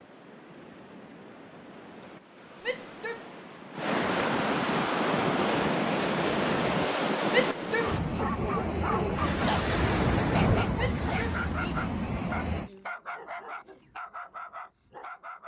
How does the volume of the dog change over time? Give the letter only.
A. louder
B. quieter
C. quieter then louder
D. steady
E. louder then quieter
B.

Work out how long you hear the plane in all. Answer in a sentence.
You can't hear the plane here.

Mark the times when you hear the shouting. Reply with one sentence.
The shouting can be heard from 2.6 to 3.2 s, from 7.3 to 8.2 s and from 10.8 to 12.8 s.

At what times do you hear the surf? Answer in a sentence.
You can hear the surf from 0.0 to 12.7 s.